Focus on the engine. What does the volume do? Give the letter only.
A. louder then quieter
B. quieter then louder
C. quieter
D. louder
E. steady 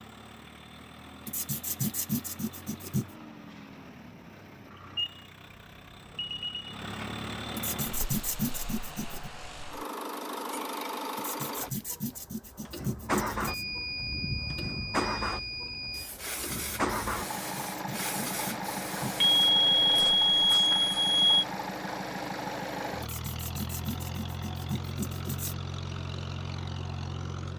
D.